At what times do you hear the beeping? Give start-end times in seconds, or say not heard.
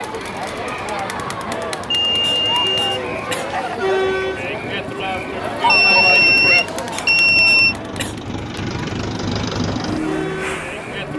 1.9-3.8, 5.7-7.8.